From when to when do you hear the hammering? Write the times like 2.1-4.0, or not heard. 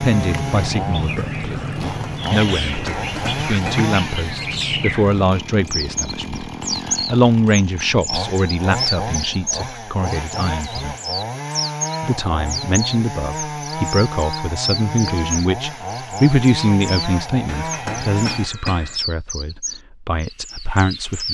2.5-3.9, 17.4-19.0.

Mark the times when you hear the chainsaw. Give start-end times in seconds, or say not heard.
0.0-18.5.